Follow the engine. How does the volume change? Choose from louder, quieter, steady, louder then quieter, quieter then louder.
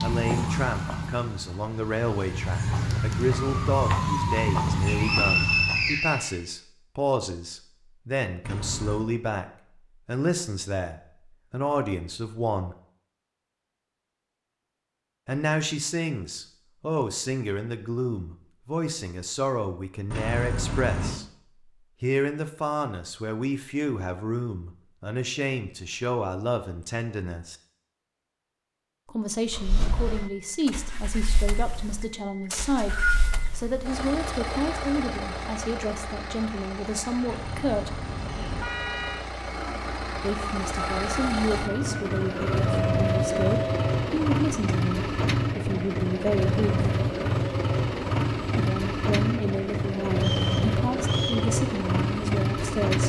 louder.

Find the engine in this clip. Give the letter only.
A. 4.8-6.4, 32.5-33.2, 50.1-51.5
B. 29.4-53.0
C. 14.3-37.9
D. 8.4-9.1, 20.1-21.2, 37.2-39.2
B.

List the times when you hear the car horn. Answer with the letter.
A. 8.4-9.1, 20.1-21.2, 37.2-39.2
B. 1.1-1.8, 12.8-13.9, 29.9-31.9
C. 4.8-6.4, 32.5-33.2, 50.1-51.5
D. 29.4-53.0
A.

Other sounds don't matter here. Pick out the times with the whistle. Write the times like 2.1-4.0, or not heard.
4.8-6.4, 32.5-33.2, 50.1-51.5.